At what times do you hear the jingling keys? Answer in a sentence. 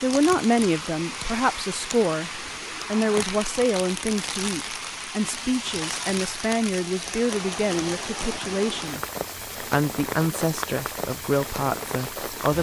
The jingling keys can't be heard in this clip.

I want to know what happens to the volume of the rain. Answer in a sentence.
The loudness of the rain stays about the same.